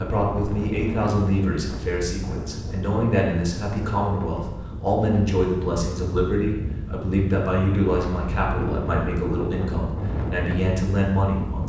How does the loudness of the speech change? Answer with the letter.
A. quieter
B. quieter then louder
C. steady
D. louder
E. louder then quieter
C.